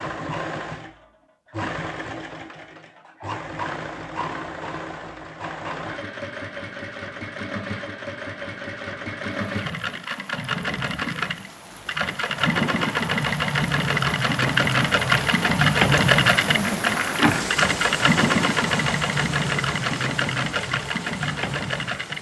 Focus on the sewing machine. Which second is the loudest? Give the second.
16 s.